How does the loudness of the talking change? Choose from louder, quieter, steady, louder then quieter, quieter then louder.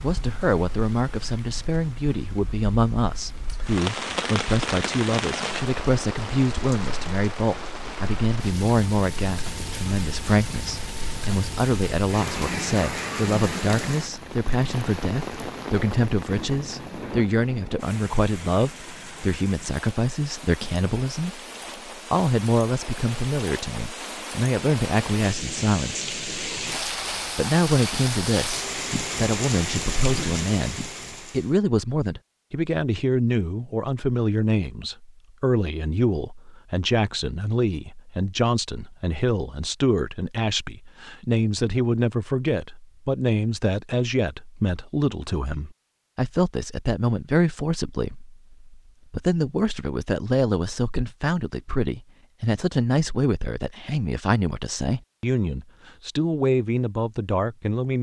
steady.